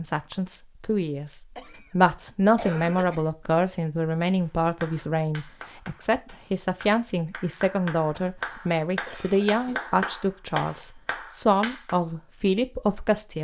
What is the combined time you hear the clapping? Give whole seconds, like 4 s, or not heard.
7 s.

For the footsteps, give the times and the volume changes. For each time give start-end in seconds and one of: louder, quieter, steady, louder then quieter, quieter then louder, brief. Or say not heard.
not heard.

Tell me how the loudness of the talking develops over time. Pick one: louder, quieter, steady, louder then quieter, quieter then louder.
steady.